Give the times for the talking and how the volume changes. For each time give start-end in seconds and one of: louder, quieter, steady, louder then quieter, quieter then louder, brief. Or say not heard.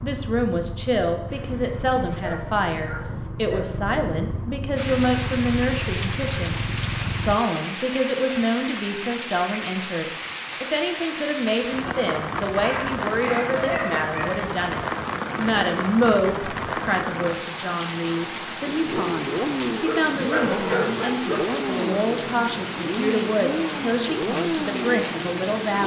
0.0-25.8 steady.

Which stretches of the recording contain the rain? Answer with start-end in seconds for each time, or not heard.
4.8-25.8.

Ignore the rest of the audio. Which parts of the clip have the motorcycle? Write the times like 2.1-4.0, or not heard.
0.0-7.4, 18.6-25.8.